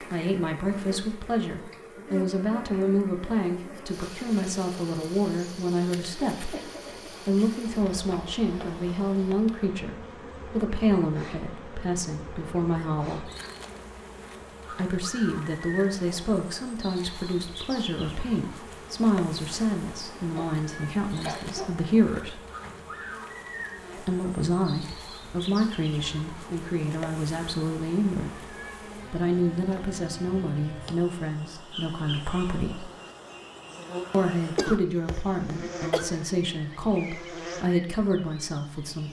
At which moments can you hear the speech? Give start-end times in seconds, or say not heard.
0.0-13.3, 14.7-22.4, 23.9-28.4, 29.1-32.9, 34.1-39.0.